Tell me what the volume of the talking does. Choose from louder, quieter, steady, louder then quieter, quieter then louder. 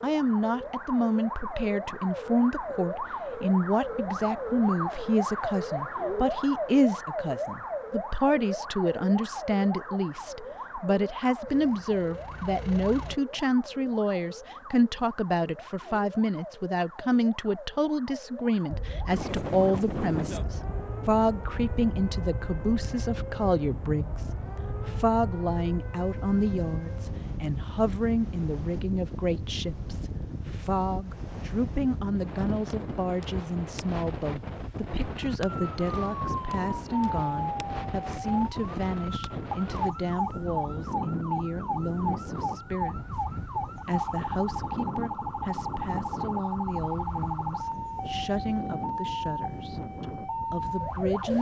quieter.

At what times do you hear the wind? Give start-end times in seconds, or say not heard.
18.7-51.3.